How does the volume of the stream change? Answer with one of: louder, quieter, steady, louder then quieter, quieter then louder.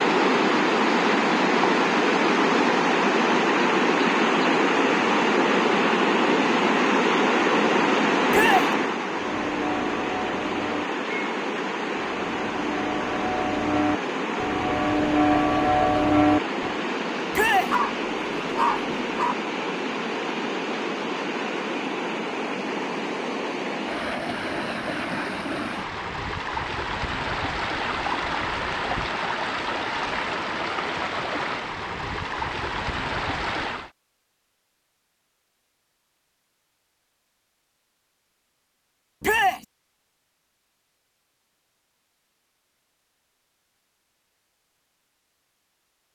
quieter.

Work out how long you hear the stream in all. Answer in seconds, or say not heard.
34 s.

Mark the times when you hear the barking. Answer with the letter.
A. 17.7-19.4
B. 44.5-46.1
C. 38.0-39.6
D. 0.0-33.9
A.